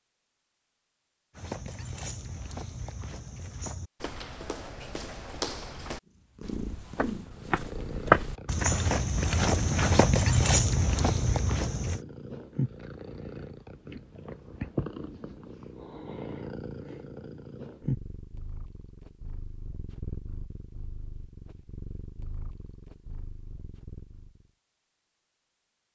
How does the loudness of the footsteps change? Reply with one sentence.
The loudness of the footsteps goes up.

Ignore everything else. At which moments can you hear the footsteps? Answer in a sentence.
The footsteps can be heard from 1.4 to 12.0 s.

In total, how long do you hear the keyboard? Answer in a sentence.
You can't hear the keyboard here.